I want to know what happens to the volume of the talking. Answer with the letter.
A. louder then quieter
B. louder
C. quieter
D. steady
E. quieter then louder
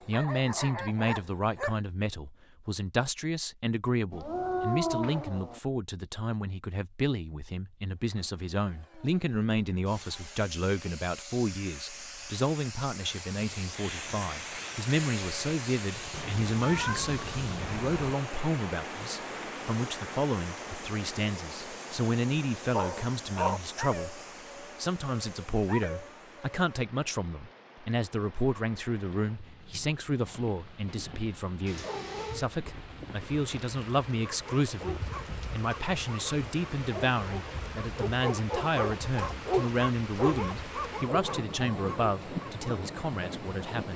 D.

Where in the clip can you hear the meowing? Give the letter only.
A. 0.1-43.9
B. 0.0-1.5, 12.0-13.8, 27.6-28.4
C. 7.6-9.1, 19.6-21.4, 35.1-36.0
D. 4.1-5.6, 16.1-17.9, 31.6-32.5
D.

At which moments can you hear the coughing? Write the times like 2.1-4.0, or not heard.
not heard.